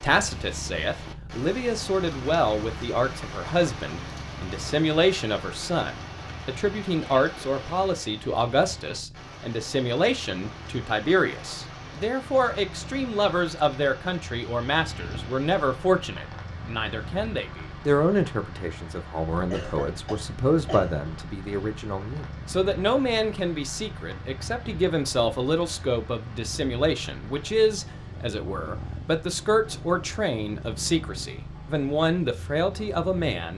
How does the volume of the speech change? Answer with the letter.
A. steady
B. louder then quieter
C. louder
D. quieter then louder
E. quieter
A.